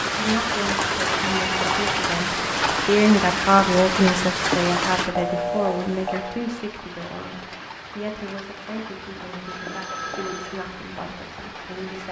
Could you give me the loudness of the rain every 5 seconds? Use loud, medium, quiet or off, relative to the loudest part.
loud, quiet, quiet.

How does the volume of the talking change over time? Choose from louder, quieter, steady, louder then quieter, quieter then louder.
louder then quieter.